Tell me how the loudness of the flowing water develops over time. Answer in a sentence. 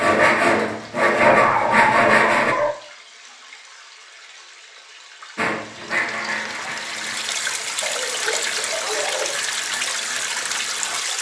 The loudness of the flowing water goes up.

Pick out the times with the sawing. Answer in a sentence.
You can hear the sawing from 0.0 to 2.5 s and from 5.3 to 11.0 s.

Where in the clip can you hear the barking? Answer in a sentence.
The barking can be heard from 1.2 to 2.8 s and from 7.8 to 9.3 s.